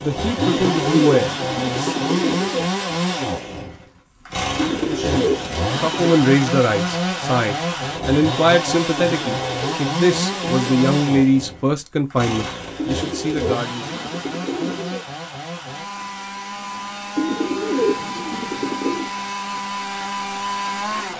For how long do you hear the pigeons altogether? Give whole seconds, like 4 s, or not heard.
10 s.